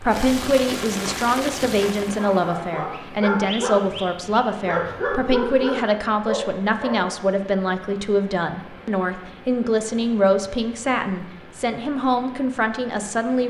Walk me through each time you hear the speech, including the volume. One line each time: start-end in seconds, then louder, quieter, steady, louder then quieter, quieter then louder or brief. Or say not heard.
0.0-13.4 steady.